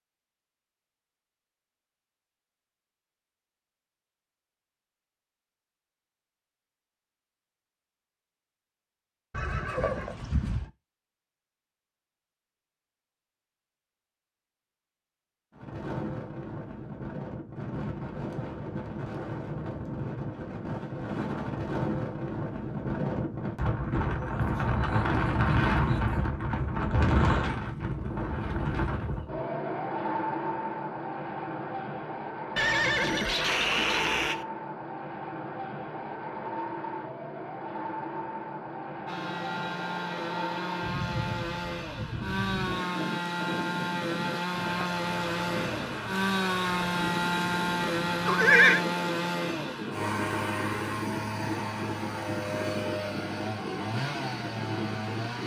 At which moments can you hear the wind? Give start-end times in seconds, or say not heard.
15.5-55.4.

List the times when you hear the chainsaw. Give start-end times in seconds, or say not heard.
39.0-55.4.